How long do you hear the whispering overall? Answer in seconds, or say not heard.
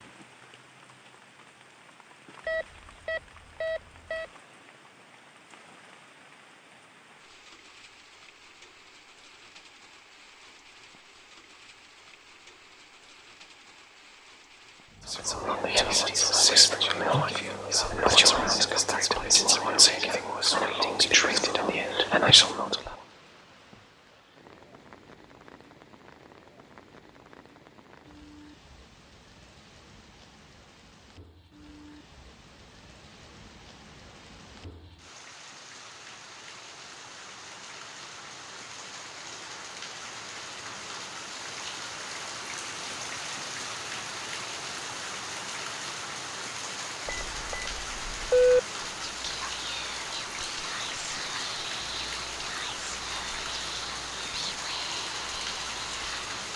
15 s.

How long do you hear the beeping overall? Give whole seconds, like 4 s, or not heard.
3 s.